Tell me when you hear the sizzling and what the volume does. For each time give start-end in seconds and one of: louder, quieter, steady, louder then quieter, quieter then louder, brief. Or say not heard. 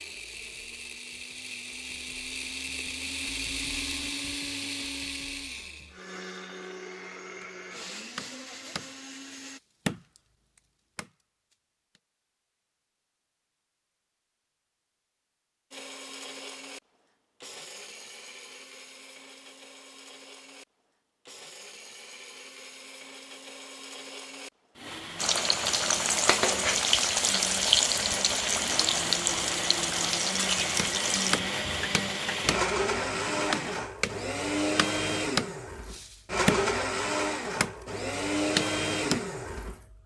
25.1-33.8 quieter.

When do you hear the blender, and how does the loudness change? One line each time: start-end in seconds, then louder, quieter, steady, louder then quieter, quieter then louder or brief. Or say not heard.
0.0-9.6 louder then quieter
15.7-40.0 louder.